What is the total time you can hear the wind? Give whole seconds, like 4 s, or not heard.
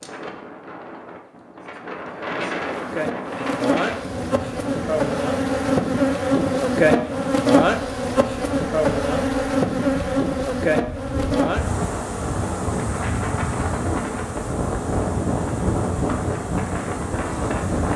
18 s.